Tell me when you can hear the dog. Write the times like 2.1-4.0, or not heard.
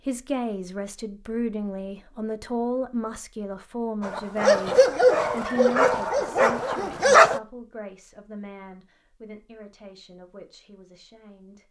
4.0-7.4.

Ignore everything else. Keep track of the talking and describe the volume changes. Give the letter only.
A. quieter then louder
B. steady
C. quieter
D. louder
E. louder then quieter
C.